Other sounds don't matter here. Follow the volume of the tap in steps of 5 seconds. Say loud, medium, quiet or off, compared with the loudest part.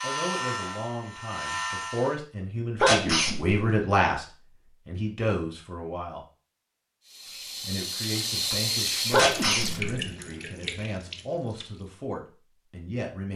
off, loud, medium.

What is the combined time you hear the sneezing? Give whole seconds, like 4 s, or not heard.
2 s.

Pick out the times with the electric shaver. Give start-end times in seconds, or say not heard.
0.0-2.2.